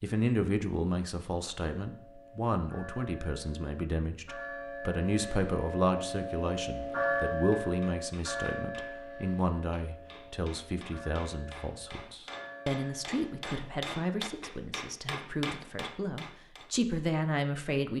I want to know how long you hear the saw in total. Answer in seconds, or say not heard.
not heard.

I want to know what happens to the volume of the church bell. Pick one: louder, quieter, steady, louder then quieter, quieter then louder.
louder then quieter.